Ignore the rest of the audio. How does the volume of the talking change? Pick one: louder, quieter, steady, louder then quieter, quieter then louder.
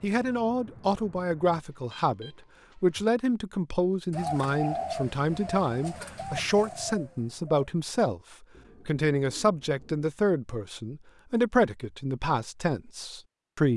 steady.